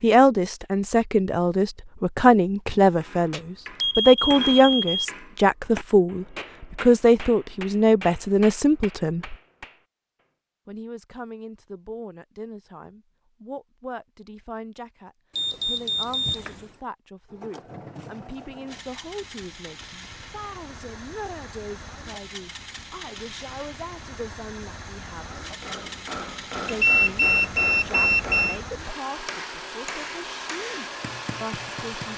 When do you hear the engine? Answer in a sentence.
You can hear the engine from 17.2 to 32.1 s.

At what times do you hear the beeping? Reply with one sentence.
You can hear the beeping from 3.3 to 5.0 s, from 15.3 to 16.6 s and from 26.7 to 28.6 s.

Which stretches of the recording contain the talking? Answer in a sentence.
You can hear the talking from 0.0 to 9.3 s, from 10.7 to 25.4 s and from 26.6 to 32.1 s.